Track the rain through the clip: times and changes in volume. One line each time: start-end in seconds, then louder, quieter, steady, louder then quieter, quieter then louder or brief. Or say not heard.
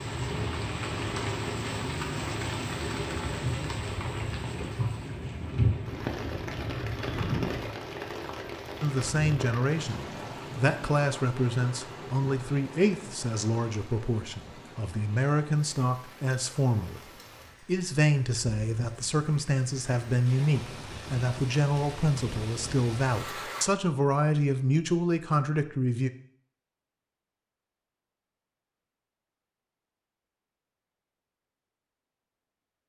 0.0-23.7 quieter then louder.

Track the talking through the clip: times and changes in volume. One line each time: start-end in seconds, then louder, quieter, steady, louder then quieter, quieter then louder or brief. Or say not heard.
8.8-17.0 quieter then louder
17.6-26.1 steady.